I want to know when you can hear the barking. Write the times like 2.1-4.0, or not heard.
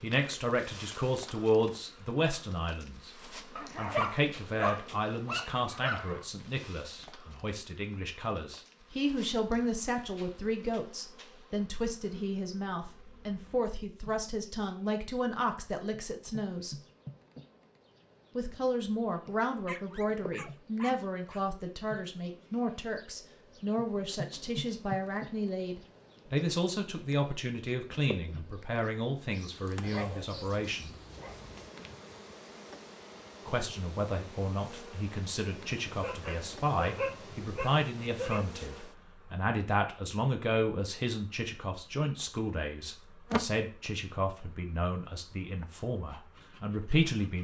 3.5-6.2, 19.6-21.4, 29.8-31.7, 35.9-38.5.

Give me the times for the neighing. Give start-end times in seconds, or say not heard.
not heard.